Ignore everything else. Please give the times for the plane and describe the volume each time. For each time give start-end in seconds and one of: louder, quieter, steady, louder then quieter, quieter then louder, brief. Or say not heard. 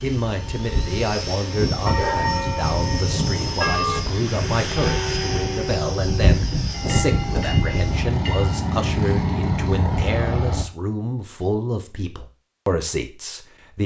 0.0-10.7 louder.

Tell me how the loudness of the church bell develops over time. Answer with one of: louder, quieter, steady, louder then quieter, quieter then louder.
quieter.